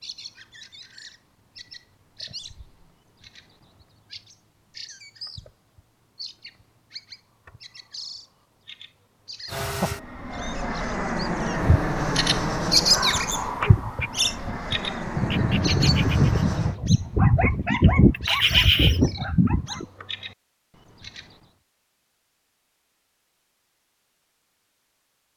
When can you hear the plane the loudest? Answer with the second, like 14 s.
12 s.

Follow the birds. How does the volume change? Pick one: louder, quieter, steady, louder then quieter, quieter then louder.
louder then quieter.